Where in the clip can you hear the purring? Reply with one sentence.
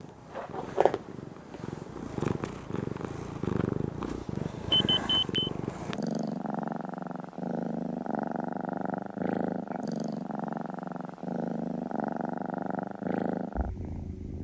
You can hear the purring from 0.0 to 14.3 s.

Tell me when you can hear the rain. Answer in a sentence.
The rain can't be heard in this clip.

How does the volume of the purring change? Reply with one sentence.
The loudness of the purring stays about the same.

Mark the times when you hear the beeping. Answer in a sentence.
The beeping can be heard from 4.7 to 5.5 s.